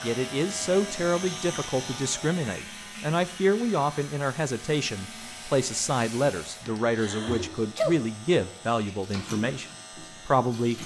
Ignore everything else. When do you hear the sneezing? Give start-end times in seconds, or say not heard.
6.7-8.0.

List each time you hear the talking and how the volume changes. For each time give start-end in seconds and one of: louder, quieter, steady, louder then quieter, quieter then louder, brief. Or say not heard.
0.0-9.7 steady
10.2-10.8 brief.